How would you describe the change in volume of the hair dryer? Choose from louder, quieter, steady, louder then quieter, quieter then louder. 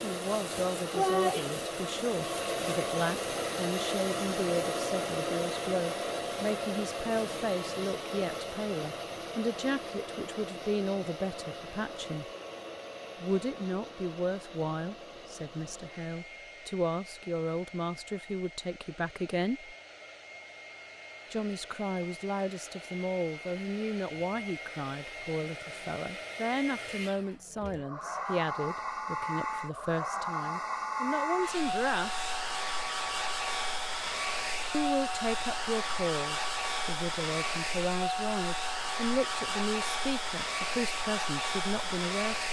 quieter then louder.